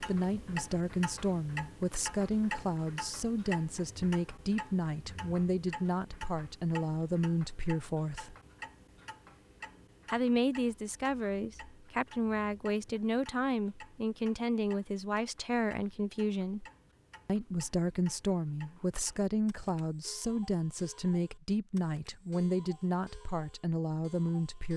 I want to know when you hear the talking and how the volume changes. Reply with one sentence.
You can hear the talking from 0.0 to 8.3 s, at a steady volume; from 10.1 to 16.6 s, at a steady volume; and from 17.2 to 24.7 s, at a steady volume.